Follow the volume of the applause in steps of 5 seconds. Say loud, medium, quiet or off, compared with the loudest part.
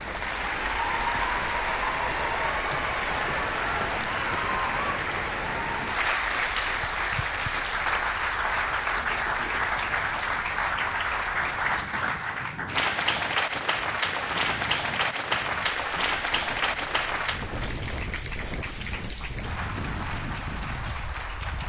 loud, loud, loud, loud, medium.